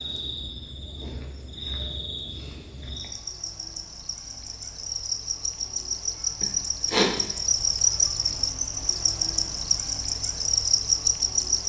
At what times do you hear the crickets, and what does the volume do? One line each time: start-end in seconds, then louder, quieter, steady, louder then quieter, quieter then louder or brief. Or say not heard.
0.0-11.6 louder.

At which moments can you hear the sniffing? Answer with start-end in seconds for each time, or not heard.
6.4-7.2.